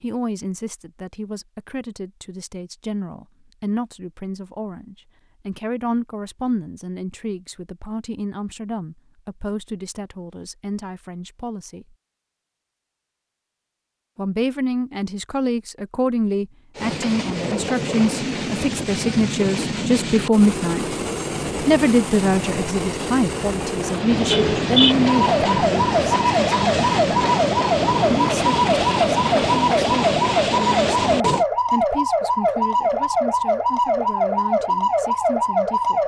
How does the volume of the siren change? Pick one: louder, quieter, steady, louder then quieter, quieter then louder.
steady.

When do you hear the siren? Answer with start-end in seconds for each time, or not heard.
25.1-36.0.